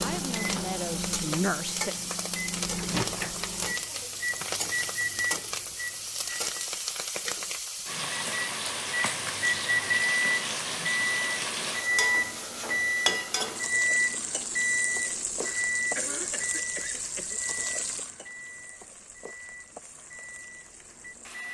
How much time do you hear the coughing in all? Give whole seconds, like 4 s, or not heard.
2 s.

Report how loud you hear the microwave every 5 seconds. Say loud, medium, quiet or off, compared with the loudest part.
medium, loud, loud, medium, quiet.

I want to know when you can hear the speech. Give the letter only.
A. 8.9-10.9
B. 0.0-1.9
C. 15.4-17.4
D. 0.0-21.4
B.